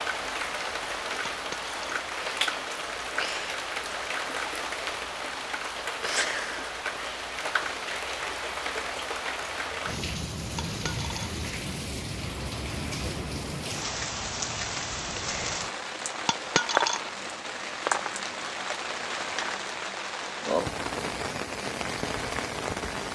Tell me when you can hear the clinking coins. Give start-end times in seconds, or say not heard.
1.3-1.9, 10.6-11.3, 16.2-17.0.